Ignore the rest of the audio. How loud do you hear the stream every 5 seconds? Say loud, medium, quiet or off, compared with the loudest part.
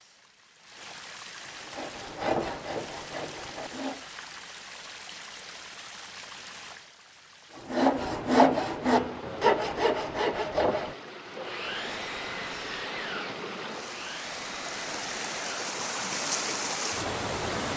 quiet, quiet, medium, loud.